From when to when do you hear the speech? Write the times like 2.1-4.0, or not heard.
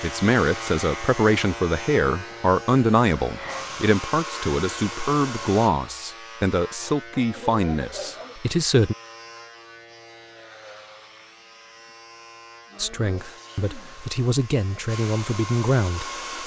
0.0-8.9, 12.8-16.4.